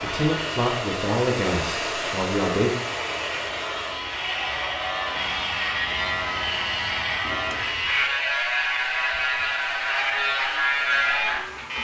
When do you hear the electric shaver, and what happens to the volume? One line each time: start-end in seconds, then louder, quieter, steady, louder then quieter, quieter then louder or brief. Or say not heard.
0.0-11.7 louder.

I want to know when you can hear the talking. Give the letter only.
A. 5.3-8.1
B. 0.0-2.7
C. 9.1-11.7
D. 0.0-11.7
B.